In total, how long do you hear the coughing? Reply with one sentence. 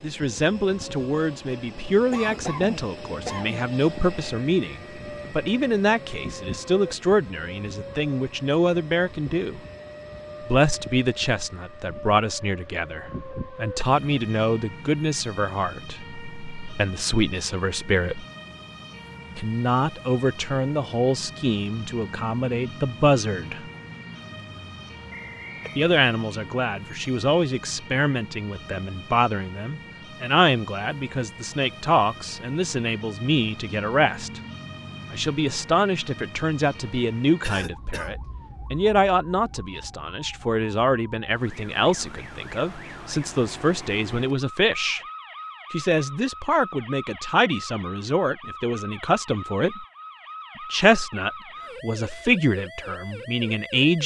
The coughing can be heard for 2 seconds in total.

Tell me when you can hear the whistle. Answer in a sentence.
You can hear the whistle from 25.1 to 25.8 s.